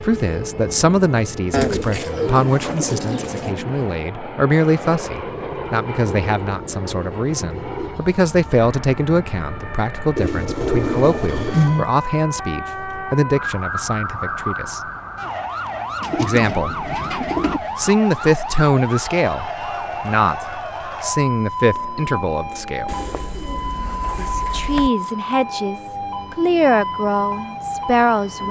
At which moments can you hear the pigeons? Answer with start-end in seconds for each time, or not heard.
1.5-3.5, 10.2-11.9, 16.0-17.6, 22.9-24.9.